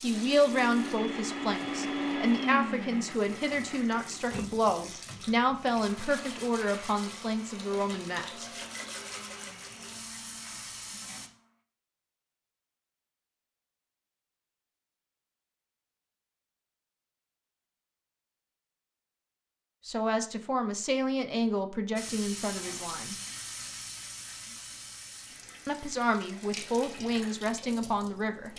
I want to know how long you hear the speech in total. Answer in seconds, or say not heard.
15 s.